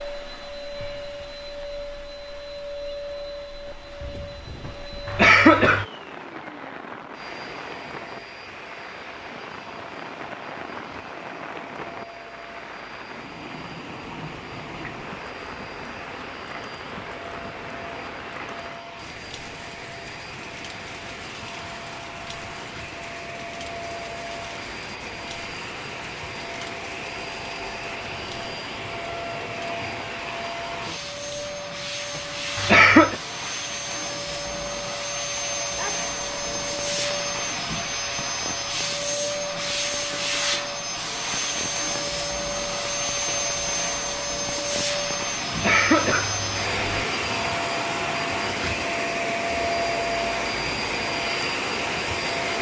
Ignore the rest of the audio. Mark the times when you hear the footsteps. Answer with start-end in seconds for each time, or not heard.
not heard.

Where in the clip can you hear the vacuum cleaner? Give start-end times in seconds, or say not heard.
0.0-52.5.